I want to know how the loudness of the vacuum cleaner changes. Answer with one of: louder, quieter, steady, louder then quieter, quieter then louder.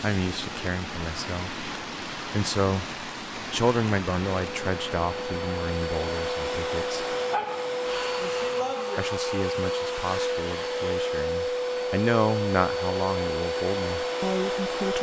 steady.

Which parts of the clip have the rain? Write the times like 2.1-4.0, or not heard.
0.0-8.9.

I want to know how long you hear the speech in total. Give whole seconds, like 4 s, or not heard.
13 s.